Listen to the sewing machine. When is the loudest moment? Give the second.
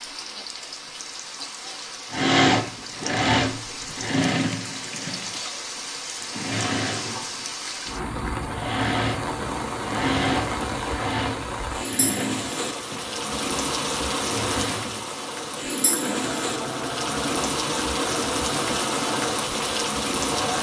3 s.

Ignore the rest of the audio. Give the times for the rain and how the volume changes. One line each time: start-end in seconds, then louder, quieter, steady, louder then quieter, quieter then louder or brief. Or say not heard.
0.0-20.5 louder.